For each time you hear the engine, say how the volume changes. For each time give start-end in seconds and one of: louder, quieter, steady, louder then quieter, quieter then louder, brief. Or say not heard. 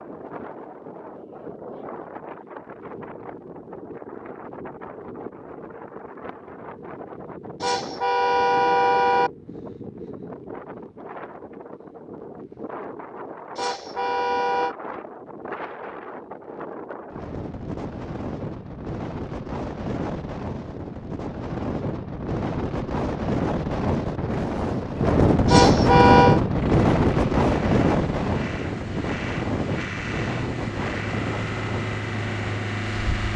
26.5-33.3 louder.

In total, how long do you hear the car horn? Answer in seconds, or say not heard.
4 s.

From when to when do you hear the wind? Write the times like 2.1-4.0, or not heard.
0.0-33.3.